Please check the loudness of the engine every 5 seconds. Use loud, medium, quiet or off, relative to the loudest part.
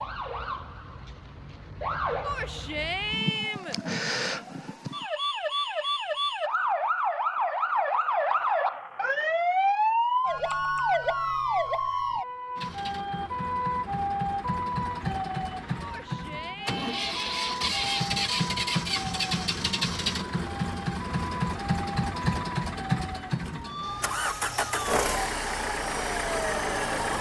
off, off, medium, loud, loud, loud.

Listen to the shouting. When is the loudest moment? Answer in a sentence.
The volume of the shouting peaks at 3 seconds.